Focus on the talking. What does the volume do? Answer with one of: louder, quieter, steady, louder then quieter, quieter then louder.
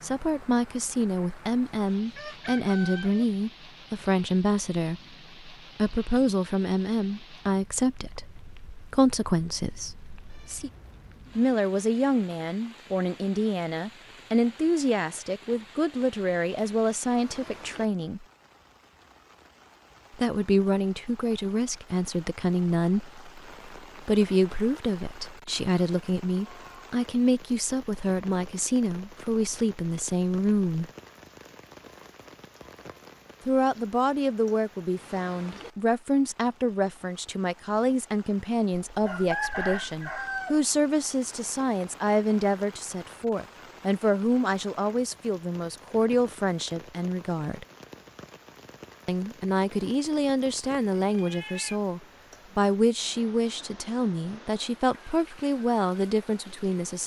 steady.